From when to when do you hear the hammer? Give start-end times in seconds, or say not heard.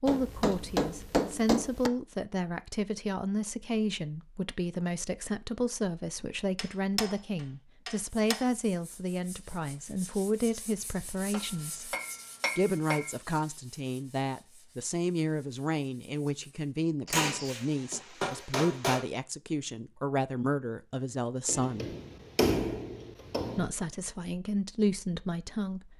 0.1-1.9, 6.5-8.4, 11.3-13.2, 17.1-19.1, 21.4-23.7.